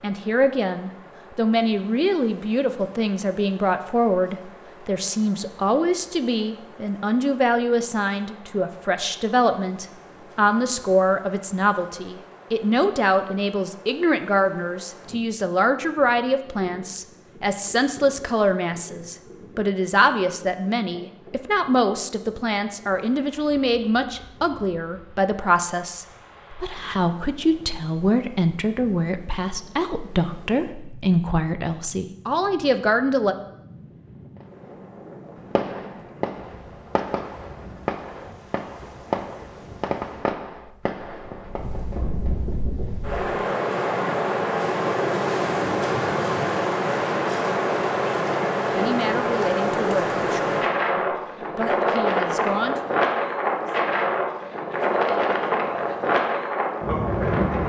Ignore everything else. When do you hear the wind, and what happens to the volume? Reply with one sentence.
The wind can be heard from 0.0 to 57.6 s, getting louder.